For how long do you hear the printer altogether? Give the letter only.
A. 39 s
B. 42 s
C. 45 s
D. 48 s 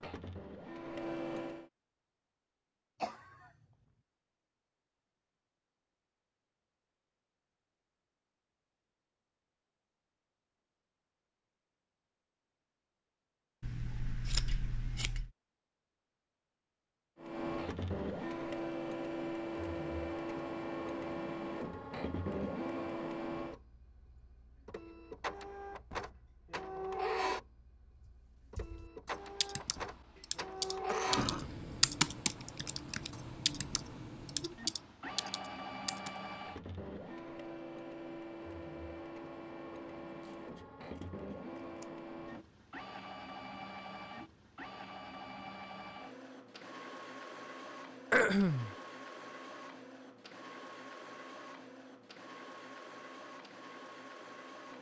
A.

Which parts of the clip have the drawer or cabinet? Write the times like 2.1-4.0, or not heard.
not heard.